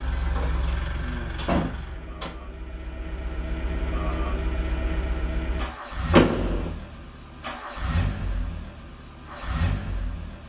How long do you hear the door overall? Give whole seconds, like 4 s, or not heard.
2 s.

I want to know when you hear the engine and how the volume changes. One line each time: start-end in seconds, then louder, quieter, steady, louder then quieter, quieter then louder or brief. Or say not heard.
0.0-10.4 steady.